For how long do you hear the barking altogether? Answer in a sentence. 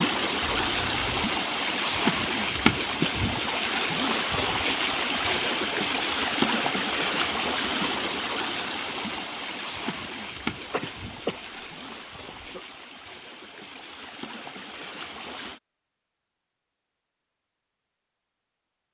You can't hear the barking here.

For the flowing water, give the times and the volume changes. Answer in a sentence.
You can hear the flowing water from 0.0 to 15.6 s, getting quieter.